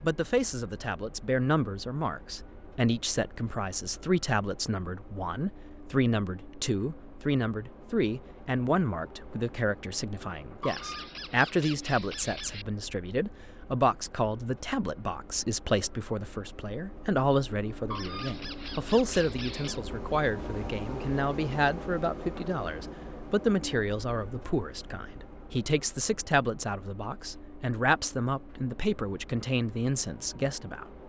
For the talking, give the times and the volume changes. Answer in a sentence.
The talking can be heard from 0.0 to 31.0 s, at a steady volume.